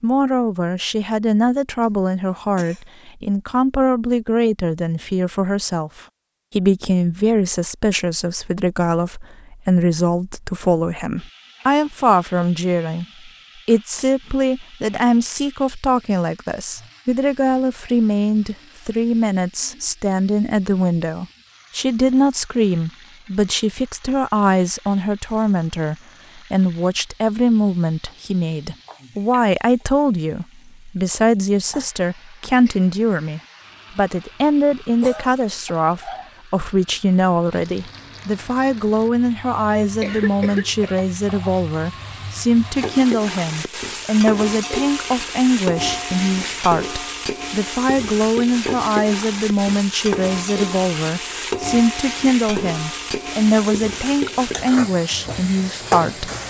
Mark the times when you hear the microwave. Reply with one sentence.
You can't hear the microwave here.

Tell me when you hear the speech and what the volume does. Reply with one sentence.
You can hear the speech from 0.0 to 56.4 s, at a steady volume.